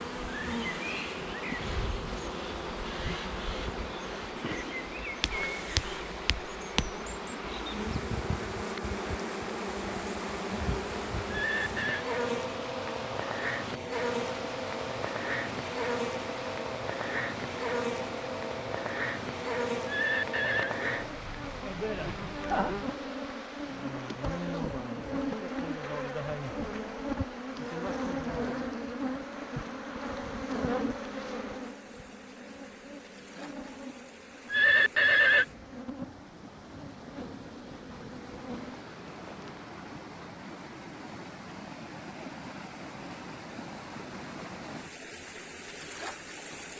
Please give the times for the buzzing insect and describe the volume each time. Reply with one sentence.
The buzzing insect can be heard from 0.0 to 39.8 s, getting quieter.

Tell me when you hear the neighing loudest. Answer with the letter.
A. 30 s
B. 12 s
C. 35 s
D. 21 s
C.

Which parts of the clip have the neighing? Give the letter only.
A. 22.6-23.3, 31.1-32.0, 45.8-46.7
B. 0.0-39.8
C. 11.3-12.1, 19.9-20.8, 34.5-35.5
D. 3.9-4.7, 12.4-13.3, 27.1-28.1
C.